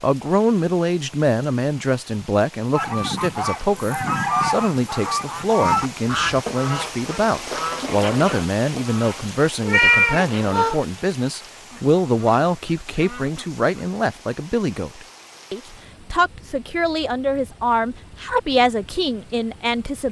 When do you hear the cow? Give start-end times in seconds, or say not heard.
not heard.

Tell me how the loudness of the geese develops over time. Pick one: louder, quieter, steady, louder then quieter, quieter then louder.
quieter.